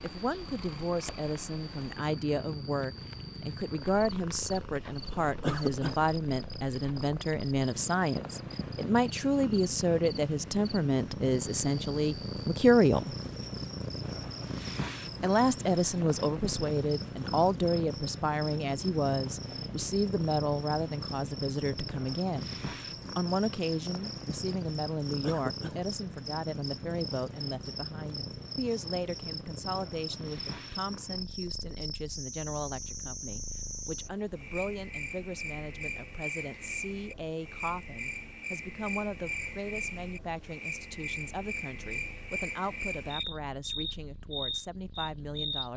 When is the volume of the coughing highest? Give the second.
6 s.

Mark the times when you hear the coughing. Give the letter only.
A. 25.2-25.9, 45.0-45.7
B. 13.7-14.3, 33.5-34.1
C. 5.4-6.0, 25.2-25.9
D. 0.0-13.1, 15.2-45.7
C.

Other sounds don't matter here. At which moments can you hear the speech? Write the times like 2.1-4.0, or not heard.
0.0-13.1, 15.2-45.7.